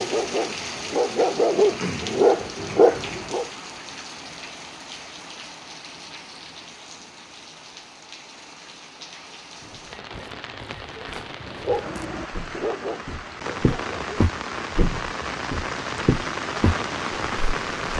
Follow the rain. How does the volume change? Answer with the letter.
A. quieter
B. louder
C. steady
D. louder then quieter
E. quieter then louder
E.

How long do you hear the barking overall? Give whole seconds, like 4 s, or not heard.
6 s.